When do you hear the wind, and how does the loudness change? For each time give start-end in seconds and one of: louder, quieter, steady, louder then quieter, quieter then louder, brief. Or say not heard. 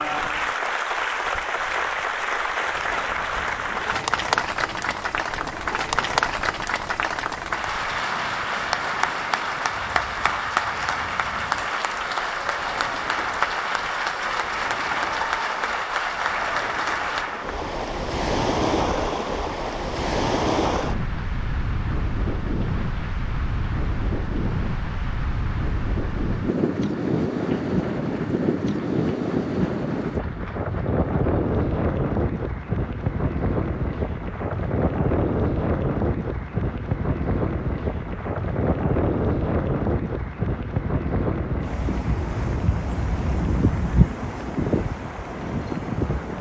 0.0-46.3 louder.